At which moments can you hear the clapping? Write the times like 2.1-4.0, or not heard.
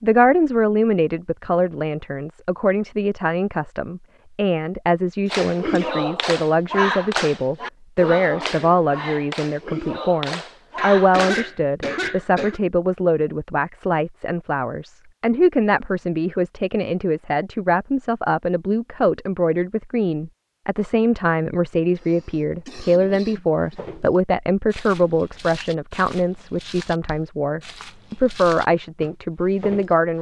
5.3-11.4.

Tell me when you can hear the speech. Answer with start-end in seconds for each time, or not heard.
0.0-30.1.